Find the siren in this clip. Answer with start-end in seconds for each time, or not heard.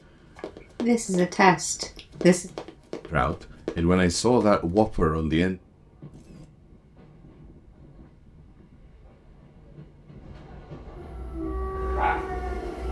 10.9-12.8.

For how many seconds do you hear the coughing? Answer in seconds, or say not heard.
2 s.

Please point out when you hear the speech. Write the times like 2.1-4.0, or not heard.
3.1-5.5.